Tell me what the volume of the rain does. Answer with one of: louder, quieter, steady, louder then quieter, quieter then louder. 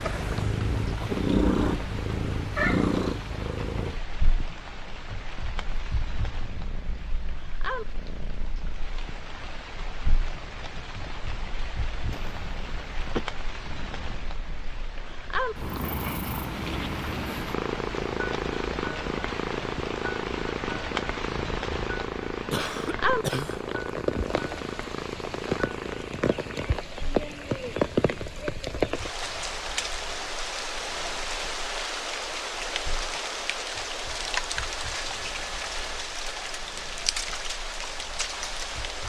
louder.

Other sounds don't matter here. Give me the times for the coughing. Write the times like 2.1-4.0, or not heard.
12.1-13.2, 22.5-23.6.